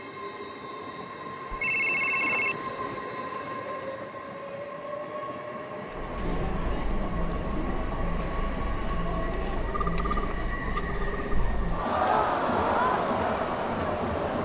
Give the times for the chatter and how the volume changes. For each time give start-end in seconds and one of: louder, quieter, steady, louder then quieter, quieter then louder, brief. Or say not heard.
5.9-14.4 louder.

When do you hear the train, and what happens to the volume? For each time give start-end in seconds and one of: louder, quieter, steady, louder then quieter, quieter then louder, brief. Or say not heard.
0.0-14.4 steady.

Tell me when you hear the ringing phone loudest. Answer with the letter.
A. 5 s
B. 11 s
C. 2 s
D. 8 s
C.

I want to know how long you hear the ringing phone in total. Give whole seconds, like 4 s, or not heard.
3 s.